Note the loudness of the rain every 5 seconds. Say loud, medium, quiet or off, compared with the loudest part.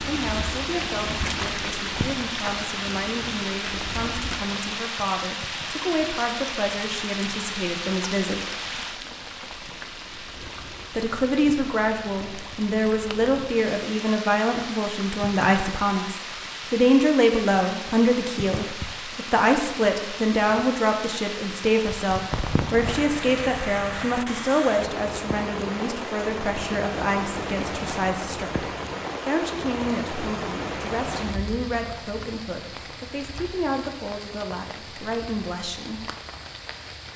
loud, loud, medium, medium, loud, loud, medium, medium.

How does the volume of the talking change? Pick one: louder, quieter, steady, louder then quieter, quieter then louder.
louder then quieter.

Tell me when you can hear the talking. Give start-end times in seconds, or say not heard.
0.0-8.5, 10.9-36.0.